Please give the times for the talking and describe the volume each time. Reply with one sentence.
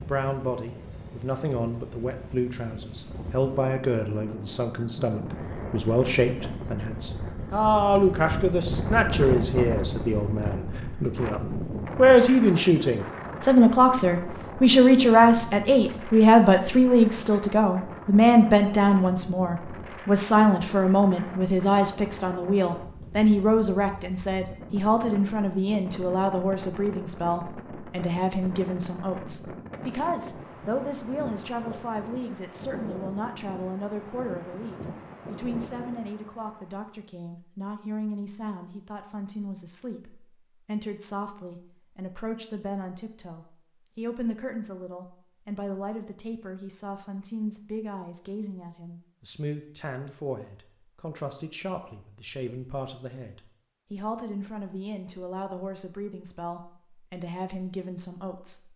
You can hear the talking from 0.0 to 58.7 s, getting louder then quieter.